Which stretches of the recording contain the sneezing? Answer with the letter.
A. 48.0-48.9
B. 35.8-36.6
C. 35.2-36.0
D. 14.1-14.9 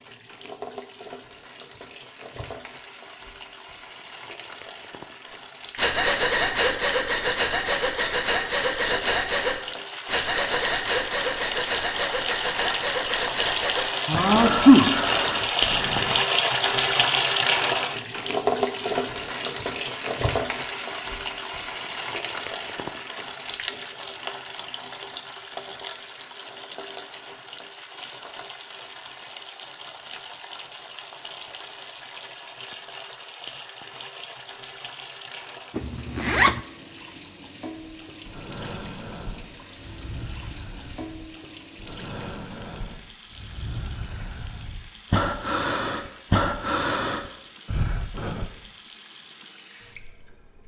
D.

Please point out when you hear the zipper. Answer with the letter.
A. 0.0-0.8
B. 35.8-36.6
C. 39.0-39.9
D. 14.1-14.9
B.